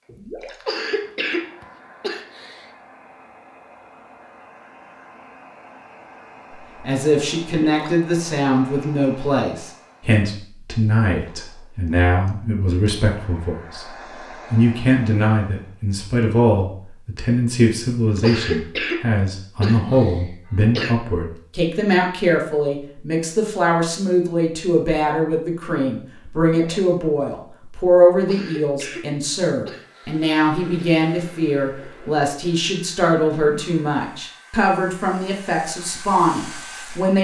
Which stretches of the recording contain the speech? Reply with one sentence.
The speech can be heard from 6.8 to 13.9 s and from 14.5 to 37.1 s.